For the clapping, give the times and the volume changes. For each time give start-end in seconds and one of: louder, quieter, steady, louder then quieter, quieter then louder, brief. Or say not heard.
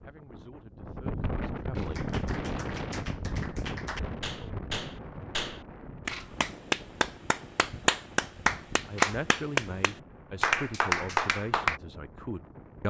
1.9-11.8 louder.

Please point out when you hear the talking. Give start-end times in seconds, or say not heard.
0.0-2.0, 8.8-12.8.